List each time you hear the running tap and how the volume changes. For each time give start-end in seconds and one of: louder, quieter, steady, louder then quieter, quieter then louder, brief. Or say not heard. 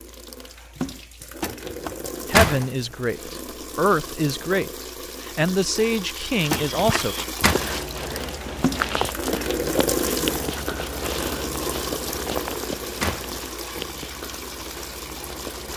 0.0-15.7 louder then quieter.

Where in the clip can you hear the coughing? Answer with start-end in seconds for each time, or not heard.
not heard.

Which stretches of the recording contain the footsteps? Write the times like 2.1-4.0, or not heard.
6.5-15.7.